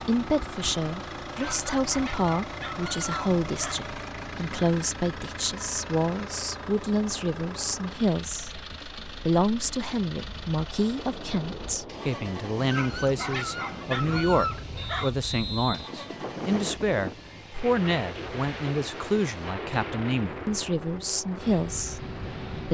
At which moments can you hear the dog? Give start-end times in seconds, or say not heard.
1.4-3.8, 12.7-15.1.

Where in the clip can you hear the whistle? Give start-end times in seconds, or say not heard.
14.8-16.8.